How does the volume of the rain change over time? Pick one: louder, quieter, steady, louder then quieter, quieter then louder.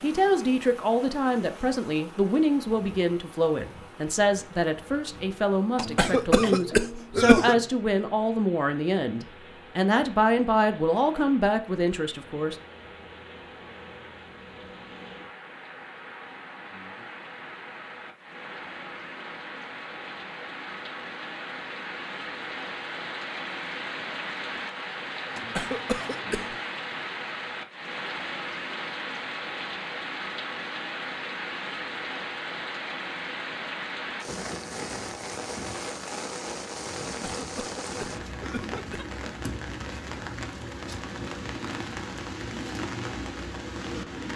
louder.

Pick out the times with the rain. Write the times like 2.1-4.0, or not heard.
0.0-44.3.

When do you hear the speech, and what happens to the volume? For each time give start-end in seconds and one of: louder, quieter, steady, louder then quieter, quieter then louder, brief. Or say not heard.
0.0-12.6 steady.